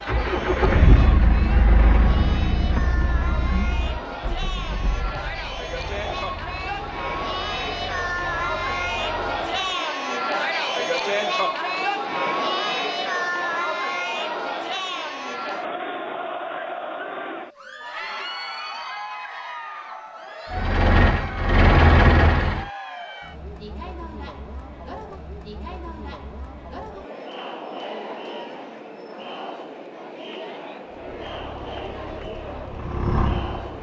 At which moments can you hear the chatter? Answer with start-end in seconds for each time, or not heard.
0.0-33.7.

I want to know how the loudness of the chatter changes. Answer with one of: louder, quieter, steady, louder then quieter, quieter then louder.
louder then quieter.